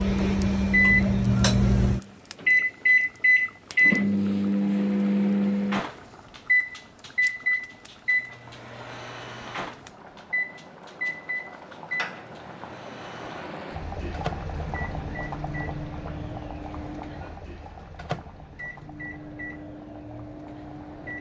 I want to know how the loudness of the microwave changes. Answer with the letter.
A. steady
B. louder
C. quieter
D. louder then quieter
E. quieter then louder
C.